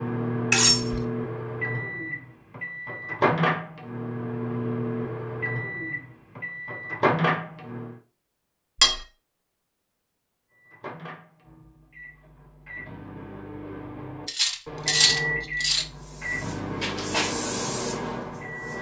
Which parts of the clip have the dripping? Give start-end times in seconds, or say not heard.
not heard.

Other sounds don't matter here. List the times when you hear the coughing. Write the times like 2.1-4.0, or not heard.
not heard.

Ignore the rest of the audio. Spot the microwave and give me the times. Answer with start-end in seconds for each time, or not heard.
0.0-8.0, 10.5-18.7.